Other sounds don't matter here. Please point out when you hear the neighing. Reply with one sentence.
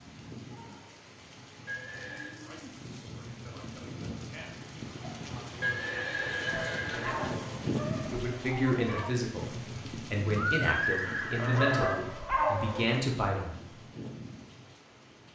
The neighing can be heard from 1.6 to 2.4 s, from 5.6 to 7.5 s and from 10.3 to 11.9 s.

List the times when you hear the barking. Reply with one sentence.
You can hear the barking from 6.5 to 9.2 s and from 11.3 to 12.8 s.